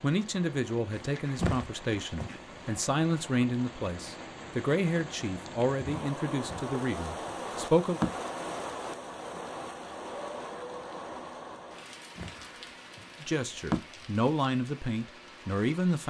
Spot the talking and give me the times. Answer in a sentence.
The talking can be heard from 0.0 to 8.0 s and from 13.2 to 16.0 s.